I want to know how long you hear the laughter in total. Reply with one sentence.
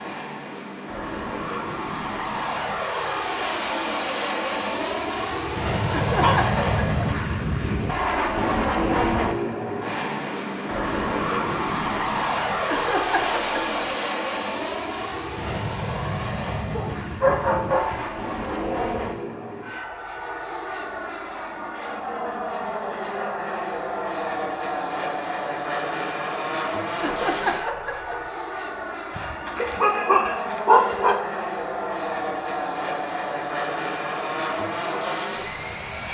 You can hear the laughter for 4 seconds altogether.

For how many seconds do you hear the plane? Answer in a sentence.
You can hear the plane for 36 seconds altogether.